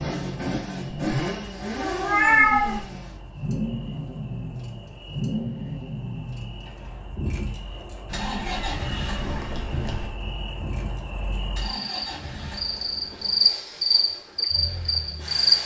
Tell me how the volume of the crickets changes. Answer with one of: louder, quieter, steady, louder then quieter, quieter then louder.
louder.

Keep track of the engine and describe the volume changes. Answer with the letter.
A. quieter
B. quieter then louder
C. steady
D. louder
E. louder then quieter
A.